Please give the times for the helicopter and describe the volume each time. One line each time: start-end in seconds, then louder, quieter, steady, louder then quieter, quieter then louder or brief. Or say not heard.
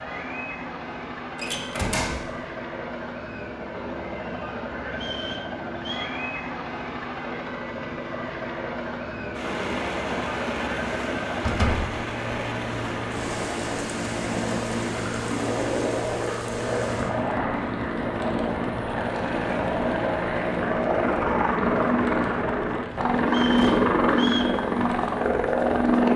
0.0-26.1 louder.